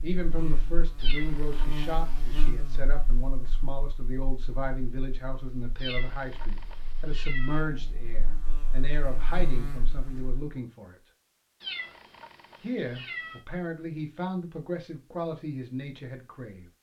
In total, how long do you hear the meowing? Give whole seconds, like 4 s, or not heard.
5 s.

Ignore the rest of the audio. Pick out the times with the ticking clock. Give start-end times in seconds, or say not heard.
not heard.